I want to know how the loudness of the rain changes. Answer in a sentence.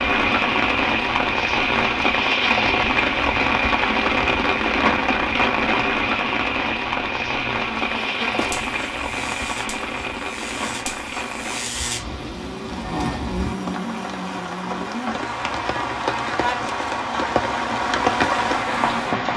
The volume of the rain goes down, then up.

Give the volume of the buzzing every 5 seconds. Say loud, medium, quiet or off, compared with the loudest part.
off, medium, loud, loud.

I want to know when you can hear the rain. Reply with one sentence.
The rain can be heard from 0.0 to 19.3 s.